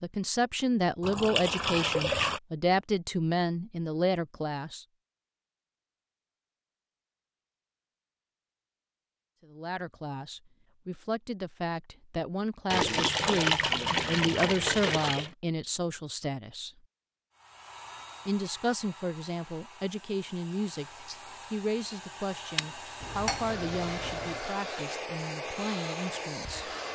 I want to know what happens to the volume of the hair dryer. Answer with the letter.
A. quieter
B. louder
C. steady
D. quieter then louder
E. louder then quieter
B.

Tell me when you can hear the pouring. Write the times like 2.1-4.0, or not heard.
1.0-2.4, 12.7-15.3, 23.0-24.4.